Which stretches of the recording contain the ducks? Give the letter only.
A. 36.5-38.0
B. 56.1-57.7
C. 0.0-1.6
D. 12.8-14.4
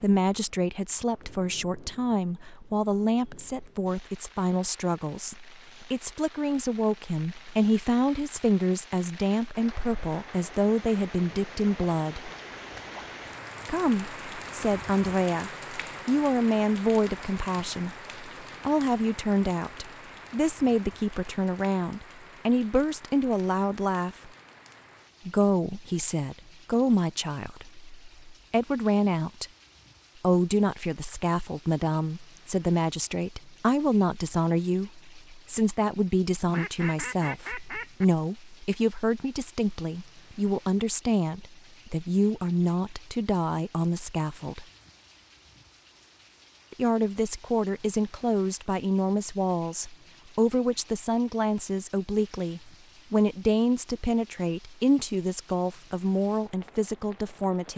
A.